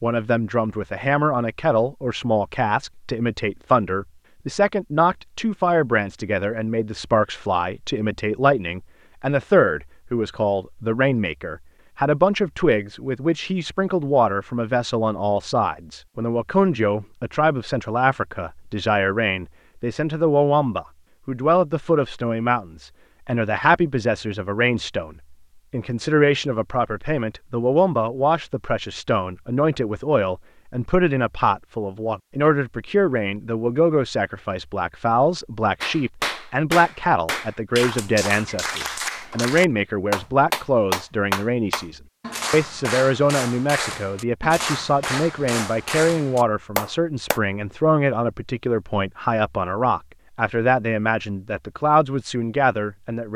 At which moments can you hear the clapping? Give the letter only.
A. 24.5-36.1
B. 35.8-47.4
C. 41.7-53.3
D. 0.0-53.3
B.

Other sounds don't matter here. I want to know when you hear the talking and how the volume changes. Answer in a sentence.
You can hear the talking from 0.0 to 53.3 s, at a steady volume.